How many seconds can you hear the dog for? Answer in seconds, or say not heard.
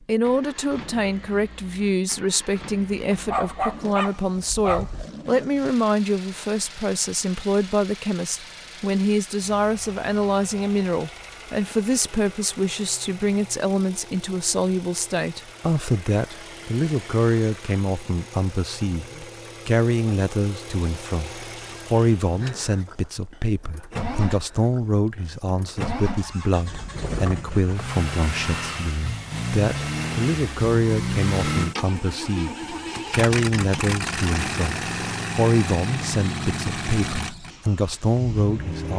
2 s.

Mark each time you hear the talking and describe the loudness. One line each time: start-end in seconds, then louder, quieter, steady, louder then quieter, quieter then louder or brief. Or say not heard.
0.1-38.9 steady.